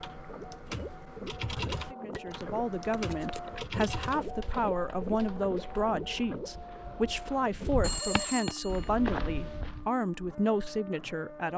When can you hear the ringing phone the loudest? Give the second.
8 s.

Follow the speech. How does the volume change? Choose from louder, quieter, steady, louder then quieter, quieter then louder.
steady.